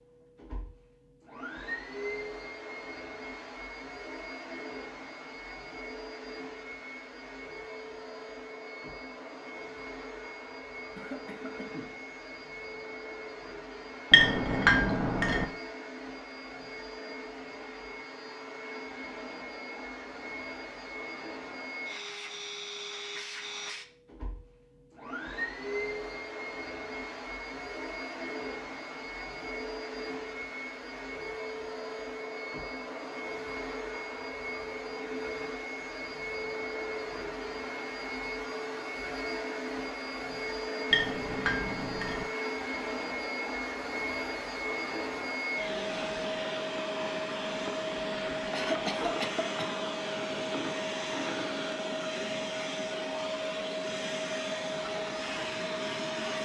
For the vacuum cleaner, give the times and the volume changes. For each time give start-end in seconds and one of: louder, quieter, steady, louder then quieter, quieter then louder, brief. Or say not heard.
0.0-56.4 louder.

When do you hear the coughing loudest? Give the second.
49 s.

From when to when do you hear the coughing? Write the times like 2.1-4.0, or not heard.
10.9-12.1, 48.5-49.8.